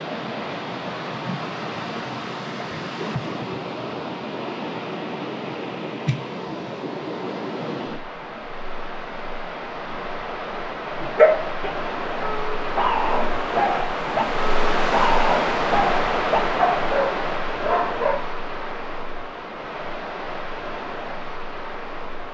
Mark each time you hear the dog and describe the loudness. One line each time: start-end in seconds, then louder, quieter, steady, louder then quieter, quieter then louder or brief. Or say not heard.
11.0-18.2 louder.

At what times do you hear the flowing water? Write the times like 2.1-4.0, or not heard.
0.0-22.2.